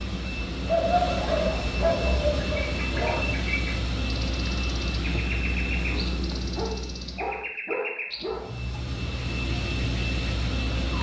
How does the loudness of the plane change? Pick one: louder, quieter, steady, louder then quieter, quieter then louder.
quieter then louder.